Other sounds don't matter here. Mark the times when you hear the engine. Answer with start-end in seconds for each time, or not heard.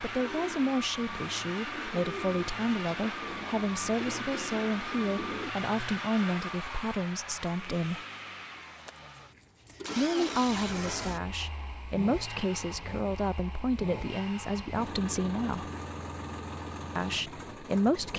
0.0-18.1.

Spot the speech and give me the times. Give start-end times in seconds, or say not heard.
0.0-8.0, 9.9-15.7, 16.9-18.1.